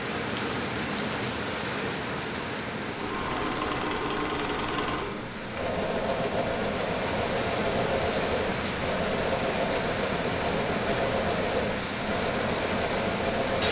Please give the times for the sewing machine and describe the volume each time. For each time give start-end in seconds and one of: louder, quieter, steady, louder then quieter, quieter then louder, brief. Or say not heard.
2.8-13.6 steady.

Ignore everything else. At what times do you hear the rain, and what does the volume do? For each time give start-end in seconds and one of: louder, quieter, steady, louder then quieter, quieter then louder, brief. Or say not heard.
0.0-13.6 quieter then louder.